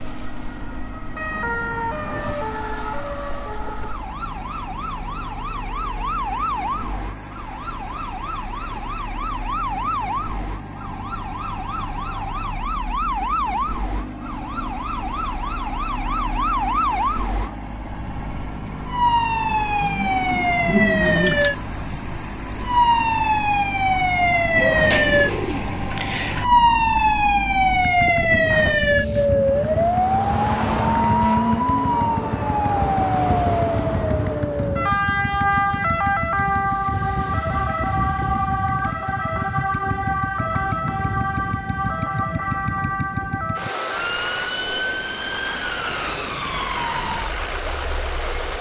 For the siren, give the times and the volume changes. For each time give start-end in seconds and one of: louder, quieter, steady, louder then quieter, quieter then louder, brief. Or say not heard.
0.0-48.5 louder then quieter.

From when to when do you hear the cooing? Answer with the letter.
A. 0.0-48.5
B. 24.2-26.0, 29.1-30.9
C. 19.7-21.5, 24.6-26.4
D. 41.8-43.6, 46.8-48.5
C.